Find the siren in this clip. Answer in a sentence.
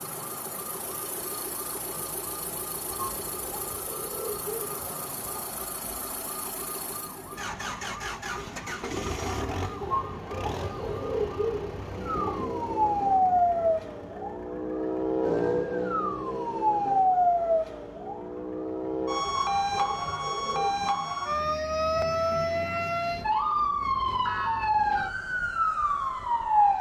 You can hear the siren from 0.0 to 26.7 s.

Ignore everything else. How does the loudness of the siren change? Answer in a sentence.
The volume of the siren goes up.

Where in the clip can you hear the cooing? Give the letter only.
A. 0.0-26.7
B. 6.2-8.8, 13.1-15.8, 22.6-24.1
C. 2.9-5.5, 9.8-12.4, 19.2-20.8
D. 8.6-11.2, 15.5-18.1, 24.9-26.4
C.